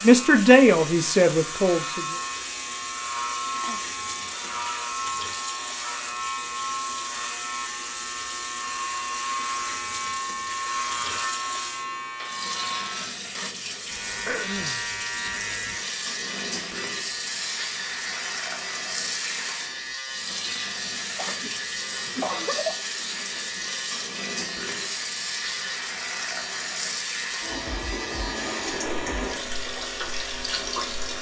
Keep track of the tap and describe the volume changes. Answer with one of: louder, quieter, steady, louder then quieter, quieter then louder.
steady.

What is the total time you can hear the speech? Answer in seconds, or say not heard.
2 s.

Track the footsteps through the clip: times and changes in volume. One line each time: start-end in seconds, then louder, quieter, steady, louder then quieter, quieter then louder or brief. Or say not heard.
not heard.